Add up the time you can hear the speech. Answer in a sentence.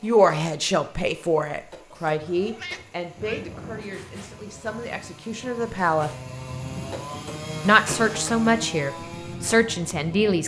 The speech can be heard for 9 seconds in total.